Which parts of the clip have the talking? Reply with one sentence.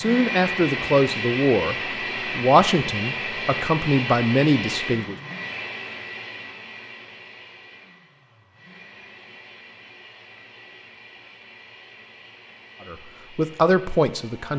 The talking can be heard from 0.0 to 5.2 s and from 12.8 to 14.5 s.